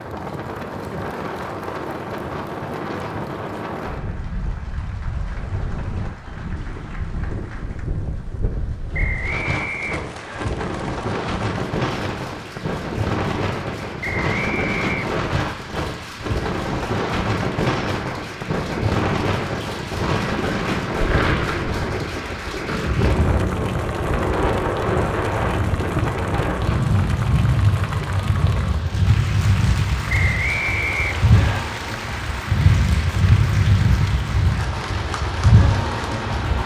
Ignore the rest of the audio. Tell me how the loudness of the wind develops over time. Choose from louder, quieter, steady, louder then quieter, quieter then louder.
louder.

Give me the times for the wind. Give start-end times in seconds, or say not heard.
0.0-36.6.